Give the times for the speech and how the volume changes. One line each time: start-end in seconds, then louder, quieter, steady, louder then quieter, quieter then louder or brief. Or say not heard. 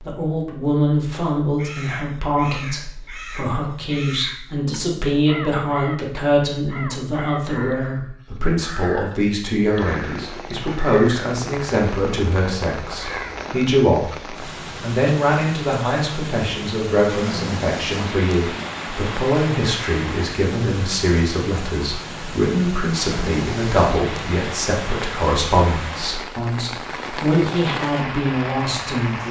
0.0-29.2 steady.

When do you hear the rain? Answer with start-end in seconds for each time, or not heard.
9.7-29.2.